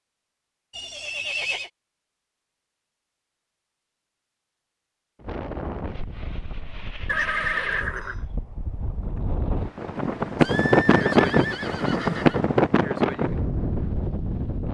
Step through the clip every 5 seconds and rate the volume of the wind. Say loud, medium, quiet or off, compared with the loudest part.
off, quiet, loud.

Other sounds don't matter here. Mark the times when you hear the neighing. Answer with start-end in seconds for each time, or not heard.
0.7-1.7, 7.0-8.2, 10.3-12.4.